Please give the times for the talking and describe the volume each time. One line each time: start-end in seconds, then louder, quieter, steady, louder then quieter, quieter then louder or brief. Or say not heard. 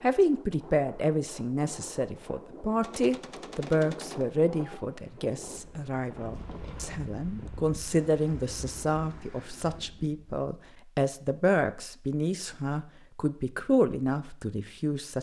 0.0-15.1 steady.